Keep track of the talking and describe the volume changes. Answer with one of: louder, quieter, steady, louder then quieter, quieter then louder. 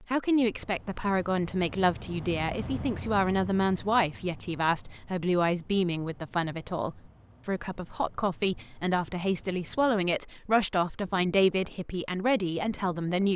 steady.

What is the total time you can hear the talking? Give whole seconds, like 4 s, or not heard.
13 s.